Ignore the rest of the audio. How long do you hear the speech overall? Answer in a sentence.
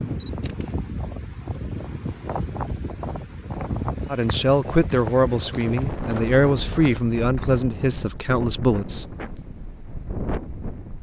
The speech can be heard for 5 seconds in total.